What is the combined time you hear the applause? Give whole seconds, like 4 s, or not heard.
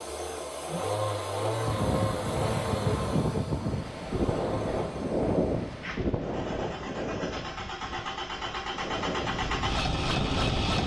not heard.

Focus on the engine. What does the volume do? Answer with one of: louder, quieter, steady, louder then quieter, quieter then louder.
quieter then louder.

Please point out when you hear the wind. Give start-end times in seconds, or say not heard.
1.6-10.8.